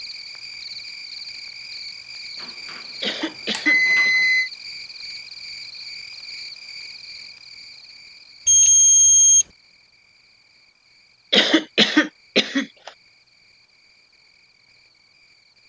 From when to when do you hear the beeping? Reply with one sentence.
The beeping can be heard from 2.8 to 4.5 s and from 8.4 to 9.4 s.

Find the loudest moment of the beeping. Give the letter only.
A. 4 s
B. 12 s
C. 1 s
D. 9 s
D.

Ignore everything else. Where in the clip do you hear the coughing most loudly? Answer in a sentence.
The loudest moment of the coughing is at 12 seconds.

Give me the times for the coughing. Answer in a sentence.
You can hear the coughing from 3.0 to 4.1 s and from 11.3 to 12.9 s.